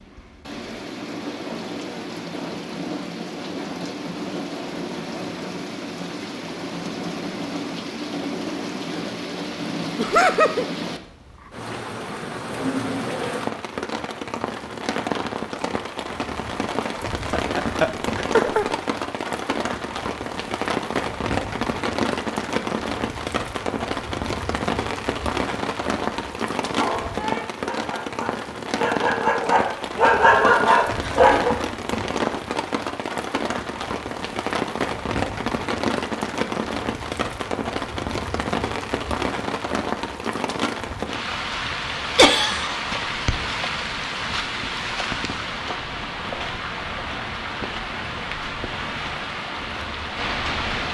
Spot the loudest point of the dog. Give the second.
30 s.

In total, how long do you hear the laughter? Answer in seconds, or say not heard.
3 s.